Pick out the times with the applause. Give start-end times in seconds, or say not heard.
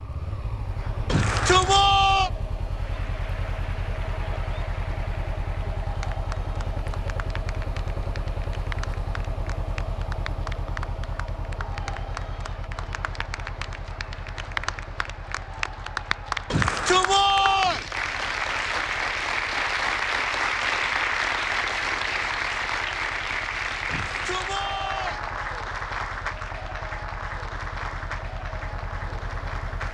2.7-29.8.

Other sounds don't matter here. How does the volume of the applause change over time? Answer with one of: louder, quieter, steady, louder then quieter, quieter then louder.
louder then quieter.